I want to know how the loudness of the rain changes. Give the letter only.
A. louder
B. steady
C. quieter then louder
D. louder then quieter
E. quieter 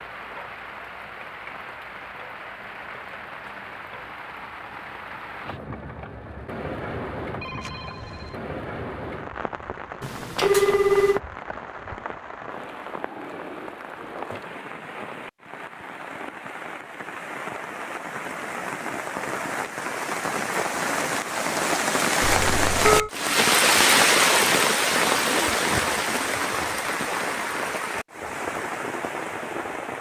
A.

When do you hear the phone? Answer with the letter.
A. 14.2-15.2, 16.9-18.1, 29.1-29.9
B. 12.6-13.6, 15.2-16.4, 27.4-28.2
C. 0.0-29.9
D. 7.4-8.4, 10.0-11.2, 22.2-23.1
D.